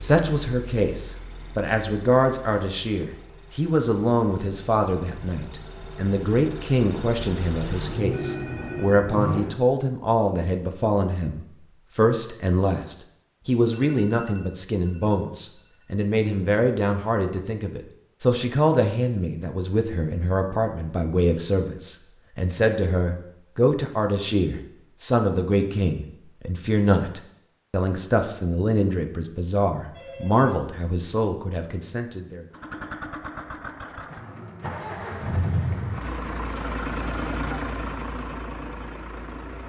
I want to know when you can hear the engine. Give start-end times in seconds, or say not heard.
0.0-9.6, 32.5-39.6.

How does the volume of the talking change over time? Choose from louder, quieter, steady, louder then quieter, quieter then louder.
steady.